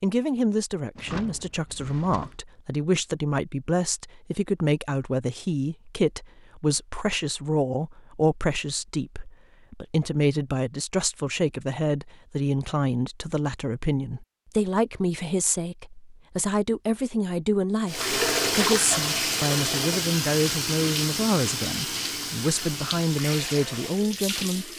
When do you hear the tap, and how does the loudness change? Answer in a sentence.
You can hear the tap from 17.9 to 24.7 s, getting quieter.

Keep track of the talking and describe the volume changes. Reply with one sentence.
The loudness of the talking stays about the same.